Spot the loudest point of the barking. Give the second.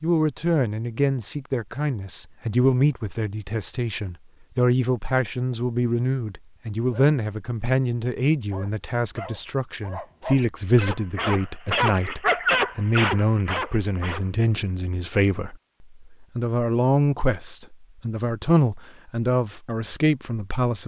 12 s.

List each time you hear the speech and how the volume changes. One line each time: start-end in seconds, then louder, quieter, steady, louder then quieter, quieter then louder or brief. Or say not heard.
0.0-20.8 steady.